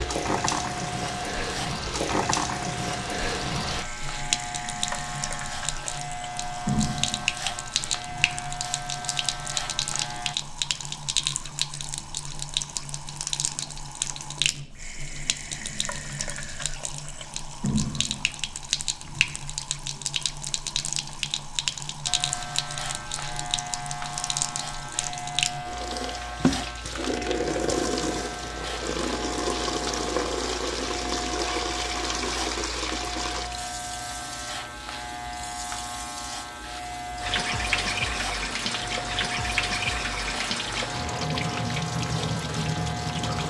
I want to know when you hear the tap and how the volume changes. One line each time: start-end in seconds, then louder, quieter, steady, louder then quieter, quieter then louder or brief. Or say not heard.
0.0-43.4 steady.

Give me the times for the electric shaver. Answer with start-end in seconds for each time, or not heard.
0.0-10.3, 22.1-43.4.